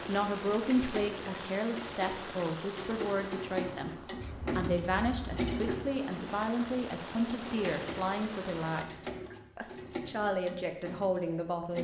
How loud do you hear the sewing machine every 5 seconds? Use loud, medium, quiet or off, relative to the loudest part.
loud, loud, medium.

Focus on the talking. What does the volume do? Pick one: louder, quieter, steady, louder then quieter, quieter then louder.
steady.